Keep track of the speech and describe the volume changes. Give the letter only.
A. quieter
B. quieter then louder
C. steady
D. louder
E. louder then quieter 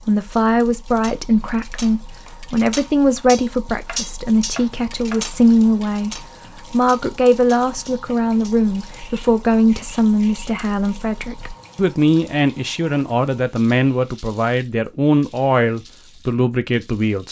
C.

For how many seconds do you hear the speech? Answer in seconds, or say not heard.
17 s.